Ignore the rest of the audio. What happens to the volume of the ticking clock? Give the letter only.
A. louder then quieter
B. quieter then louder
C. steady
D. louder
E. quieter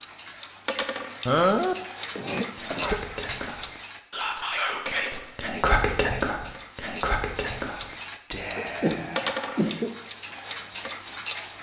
B.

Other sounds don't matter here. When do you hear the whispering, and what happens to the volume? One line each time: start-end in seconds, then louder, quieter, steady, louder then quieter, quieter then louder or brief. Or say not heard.
2.5-9.7 louder then quieter.